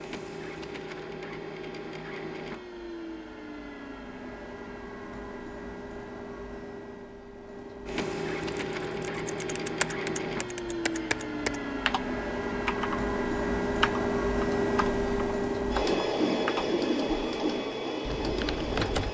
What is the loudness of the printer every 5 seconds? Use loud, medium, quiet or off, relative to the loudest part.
medium, medium, loud, loud.